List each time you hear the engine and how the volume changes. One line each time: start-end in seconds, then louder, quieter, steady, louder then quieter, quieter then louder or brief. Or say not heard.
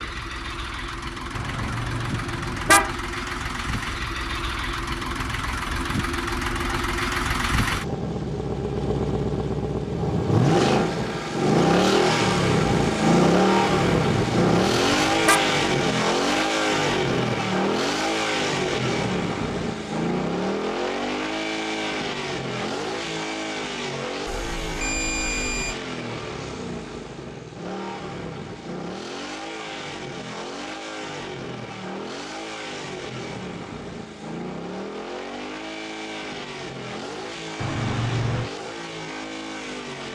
0.0-40.1 louder then quieter.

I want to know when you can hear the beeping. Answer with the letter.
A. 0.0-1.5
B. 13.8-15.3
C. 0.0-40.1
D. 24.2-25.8
D.